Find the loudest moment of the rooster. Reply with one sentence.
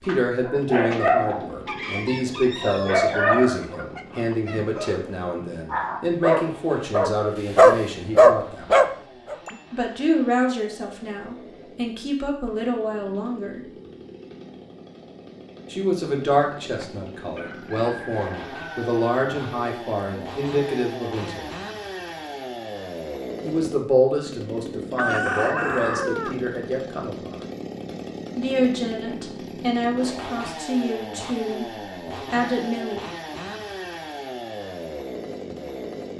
The volume of the rooster peaks at 25 seconds.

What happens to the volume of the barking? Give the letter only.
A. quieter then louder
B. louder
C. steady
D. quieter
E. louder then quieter
A.